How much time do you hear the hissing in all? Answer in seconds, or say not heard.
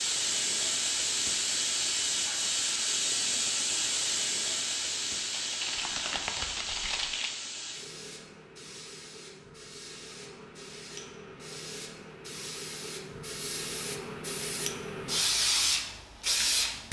17 s.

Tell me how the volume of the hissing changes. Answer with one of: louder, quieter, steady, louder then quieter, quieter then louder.
quieter then louder.